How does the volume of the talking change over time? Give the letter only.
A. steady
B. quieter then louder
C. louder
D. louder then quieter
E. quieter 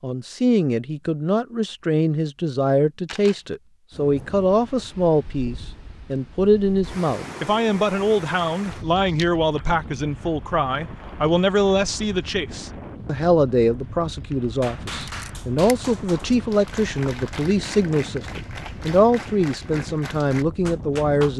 A.